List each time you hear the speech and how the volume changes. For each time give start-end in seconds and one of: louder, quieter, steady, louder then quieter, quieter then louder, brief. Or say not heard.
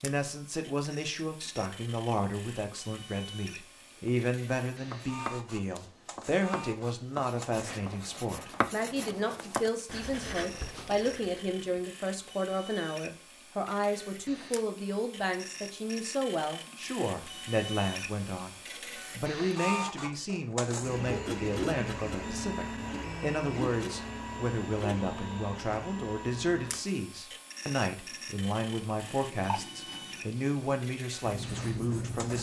0.0-18.6 steady
19.1-32.3 steady.